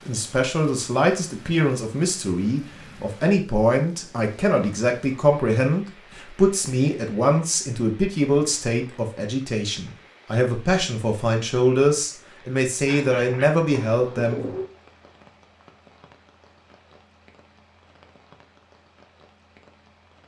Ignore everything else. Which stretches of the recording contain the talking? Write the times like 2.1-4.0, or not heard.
0.1-14.5.